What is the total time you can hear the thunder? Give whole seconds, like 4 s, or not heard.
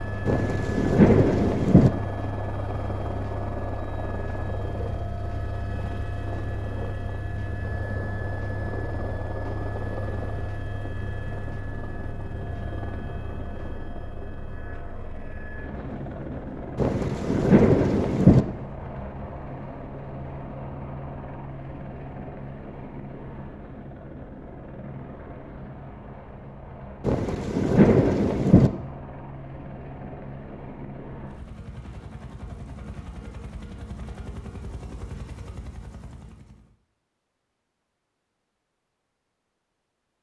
5 s.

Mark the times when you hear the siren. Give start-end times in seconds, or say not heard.
not heard.